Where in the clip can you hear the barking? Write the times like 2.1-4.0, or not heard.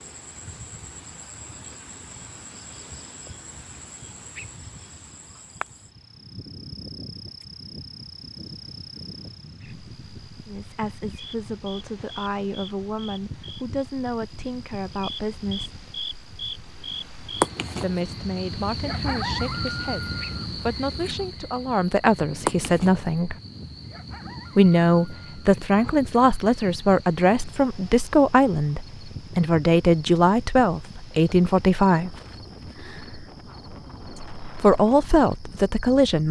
not heard.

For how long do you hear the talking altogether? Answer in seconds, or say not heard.
20 s.